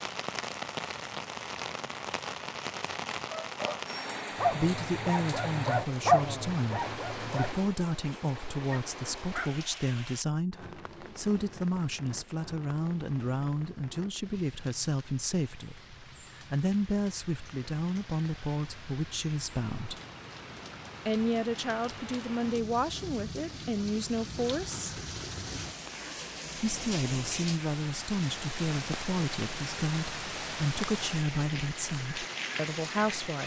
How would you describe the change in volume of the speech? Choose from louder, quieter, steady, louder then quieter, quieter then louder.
steady.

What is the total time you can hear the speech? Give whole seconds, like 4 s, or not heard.
26 s.